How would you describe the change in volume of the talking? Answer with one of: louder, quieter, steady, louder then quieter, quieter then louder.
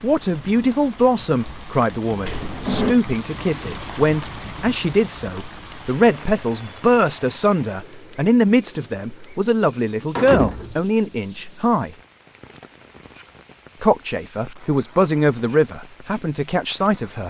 steady.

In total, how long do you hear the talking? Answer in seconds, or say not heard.
15 s.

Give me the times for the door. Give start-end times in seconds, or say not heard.
2.2-3.0, 10.2-10.8.